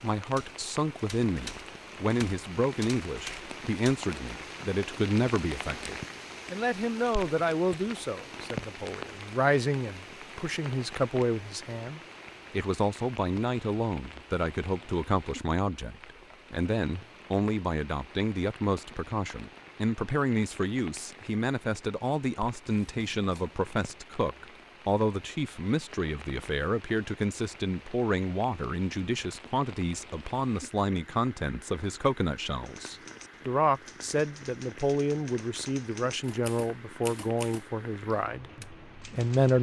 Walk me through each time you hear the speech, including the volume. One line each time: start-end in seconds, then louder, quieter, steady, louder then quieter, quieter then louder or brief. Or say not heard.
0.0-39.5 steady.